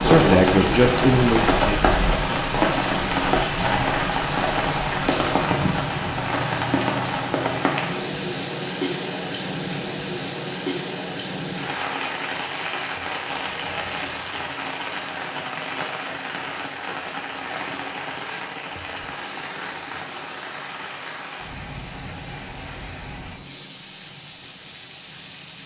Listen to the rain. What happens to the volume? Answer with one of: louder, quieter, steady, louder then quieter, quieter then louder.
quieter.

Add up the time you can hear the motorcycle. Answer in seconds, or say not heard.
not heard.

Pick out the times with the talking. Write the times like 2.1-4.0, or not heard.
0.0-2.5.